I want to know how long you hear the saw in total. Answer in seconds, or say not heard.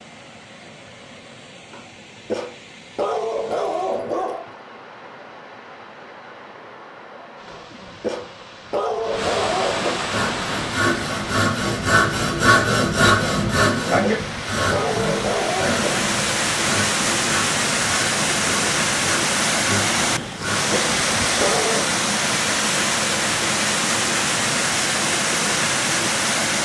11 s.